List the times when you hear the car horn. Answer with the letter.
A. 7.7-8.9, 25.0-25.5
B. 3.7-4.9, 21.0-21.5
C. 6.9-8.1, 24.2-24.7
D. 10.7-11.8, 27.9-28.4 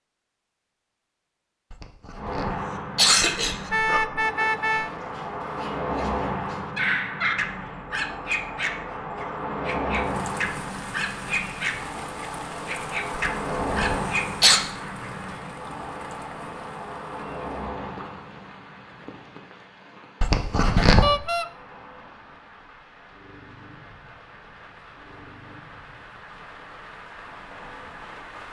B.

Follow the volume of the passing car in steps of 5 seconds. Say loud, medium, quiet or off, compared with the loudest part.
loud, loud, loud, medium, quiet, quiet.